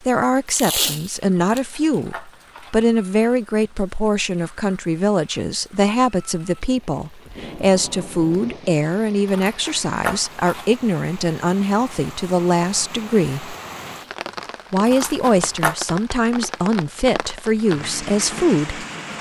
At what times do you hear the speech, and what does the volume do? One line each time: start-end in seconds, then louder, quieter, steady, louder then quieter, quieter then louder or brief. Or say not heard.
0.1-13.6 steady
14.7-18.9 steady.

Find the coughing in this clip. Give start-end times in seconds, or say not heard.
not heard.